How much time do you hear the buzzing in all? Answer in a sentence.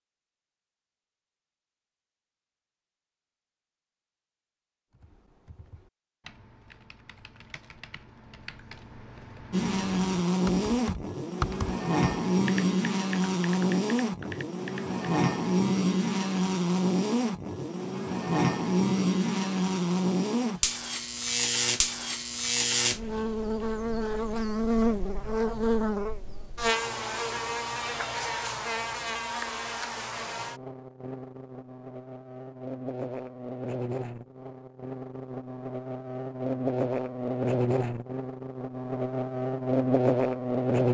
The buzzing can be heard for 31 seconds in total.